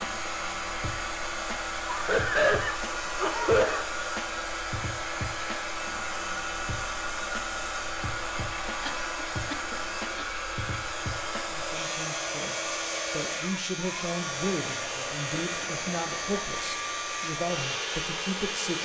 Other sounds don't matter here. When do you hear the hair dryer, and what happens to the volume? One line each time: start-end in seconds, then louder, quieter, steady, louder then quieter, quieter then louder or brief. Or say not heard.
0.0-18.8 steady.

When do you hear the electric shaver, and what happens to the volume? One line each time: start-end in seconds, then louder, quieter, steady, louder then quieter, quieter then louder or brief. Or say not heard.
0.0-18.8 steady.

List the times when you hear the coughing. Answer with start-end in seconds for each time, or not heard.
1.9-3.9, 8.8-10.2, 15.4-16.3.